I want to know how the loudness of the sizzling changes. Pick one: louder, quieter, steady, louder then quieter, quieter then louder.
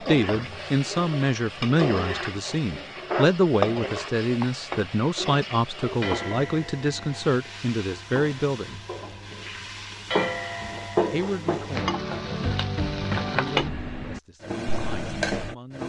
quieter then louder.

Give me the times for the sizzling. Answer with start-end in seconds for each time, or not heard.
0.0-15.8.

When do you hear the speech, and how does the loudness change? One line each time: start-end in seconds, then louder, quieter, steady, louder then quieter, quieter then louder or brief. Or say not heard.
0.1-8.8 steady
10.6-12.6 brief
13.3-15.8 brief.